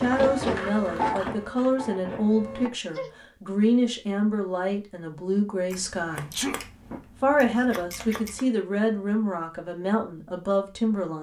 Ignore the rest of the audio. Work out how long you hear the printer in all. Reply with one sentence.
You can hear the printer for 3 seconds altogether.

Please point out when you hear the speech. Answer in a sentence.
The speech can be heard from 0.0 to 6.3 s and from 7.2 to 11.1 s.